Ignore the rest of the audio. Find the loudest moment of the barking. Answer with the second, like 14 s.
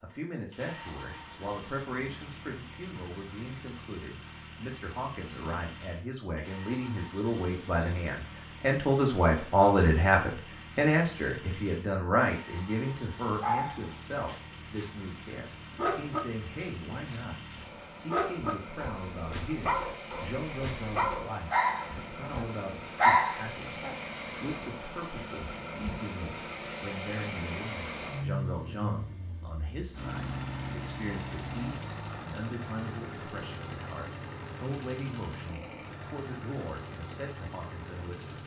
23 s.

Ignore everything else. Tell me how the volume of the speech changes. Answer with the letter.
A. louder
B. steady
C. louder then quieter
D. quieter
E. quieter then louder
C.